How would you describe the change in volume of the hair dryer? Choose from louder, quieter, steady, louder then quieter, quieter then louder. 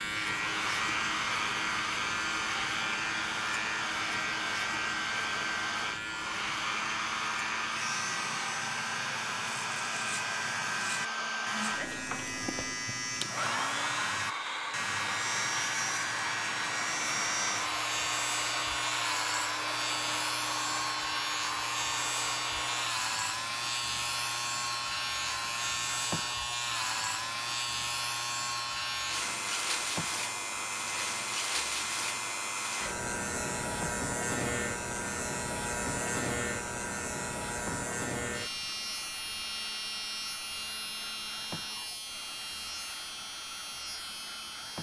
quieter.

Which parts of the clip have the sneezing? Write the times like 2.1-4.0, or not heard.
11.5-12.1.